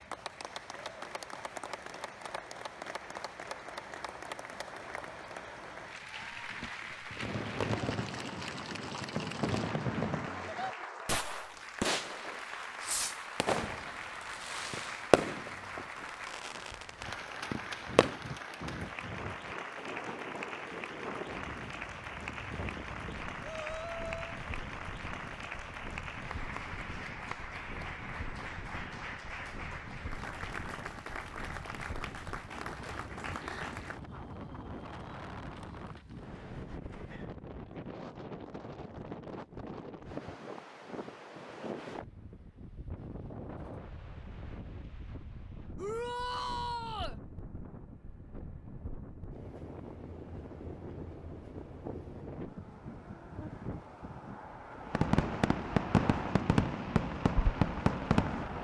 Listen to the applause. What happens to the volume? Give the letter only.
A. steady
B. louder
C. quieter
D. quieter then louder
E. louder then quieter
A.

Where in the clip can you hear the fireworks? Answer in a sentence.
You can hear the fireworks from 7.2 to 18.2 s and from 54.9 to 58.5 s.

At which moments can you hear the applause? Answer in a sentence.
The applause can be heard from 0.0 to 34.0 s.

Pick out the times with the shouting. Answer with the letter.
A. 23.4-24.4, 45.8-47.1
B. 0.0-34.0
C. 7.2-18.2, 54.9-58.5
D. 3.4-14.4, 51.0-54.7
A.